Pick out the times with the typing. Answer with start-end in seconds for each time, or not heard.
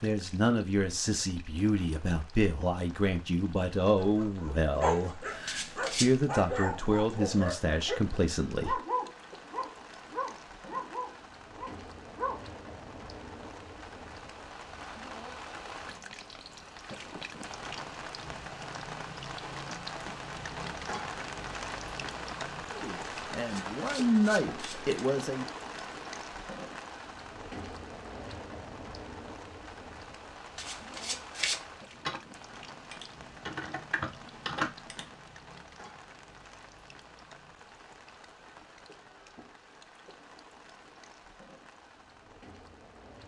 31.9-35.1.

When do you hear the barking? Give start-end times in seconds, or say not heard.
4.0-12.5.